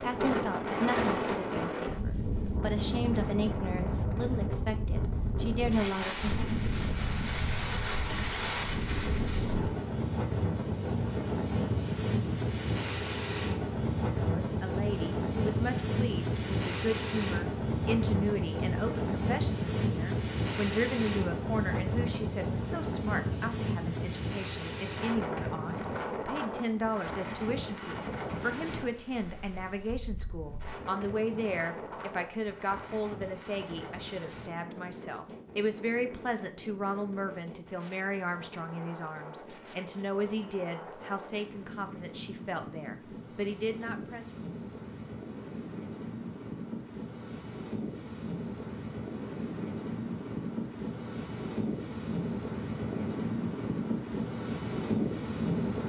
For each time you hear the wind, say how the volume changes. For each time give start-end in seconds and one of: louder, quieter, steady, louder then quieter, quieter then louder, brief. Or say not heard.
0.0-55.8 quieter then louder.